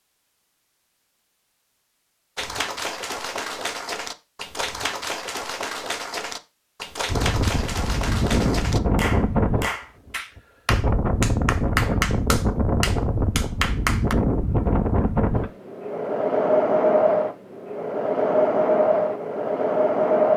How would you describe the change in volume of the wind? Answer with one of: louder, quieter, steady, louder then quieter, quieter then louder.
steady.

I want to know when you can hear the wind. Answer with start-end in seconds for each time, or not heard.
7.1-20.3.